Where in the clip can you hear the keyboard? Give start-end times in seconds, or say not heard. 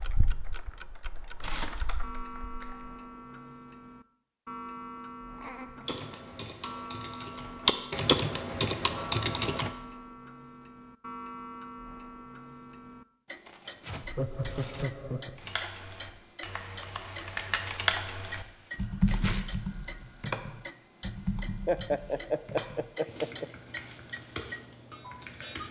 0.0-2.9, 5.8-9.7, 15.3-25.6.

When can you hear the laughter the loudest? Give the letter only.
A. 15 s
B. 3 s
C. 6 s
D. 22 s
D.